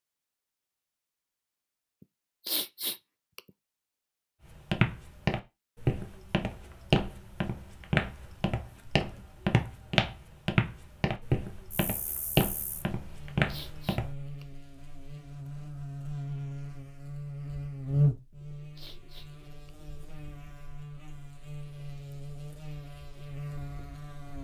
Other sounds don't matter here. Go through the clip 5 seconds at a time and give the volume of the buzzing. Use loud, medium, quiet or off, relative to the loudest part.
off, off, quiet, loud, medium.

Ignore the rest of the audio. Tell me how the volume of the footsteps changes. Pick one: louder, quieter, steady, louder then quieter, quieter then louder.
steady.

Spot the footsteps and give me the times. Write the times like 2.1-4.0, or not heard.
4.5-14.1.